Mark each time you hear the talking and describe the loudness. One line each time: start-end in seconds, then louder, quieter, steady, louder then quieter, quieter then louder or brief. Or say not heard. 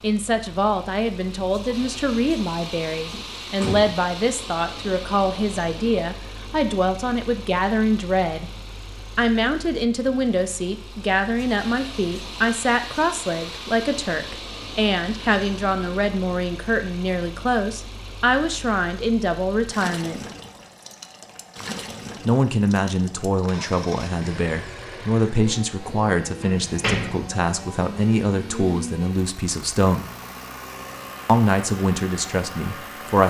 0.0-8.4 steady
9.2-20.2 steady
22.2-30.1 steady
31.2-33.2 brief.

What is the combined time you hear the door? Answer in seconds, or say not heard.
2 s.